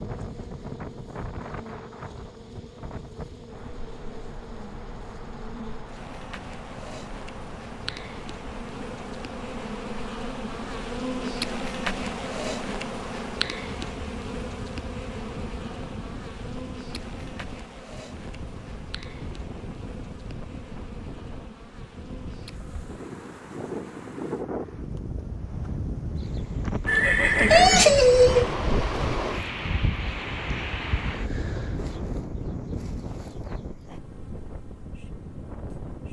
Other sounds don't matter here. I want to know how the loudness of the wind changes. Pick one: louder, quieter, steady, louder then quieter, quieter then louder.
louder.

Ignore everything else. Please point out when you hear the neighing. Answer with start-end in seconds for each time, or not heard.
26.9-28.5.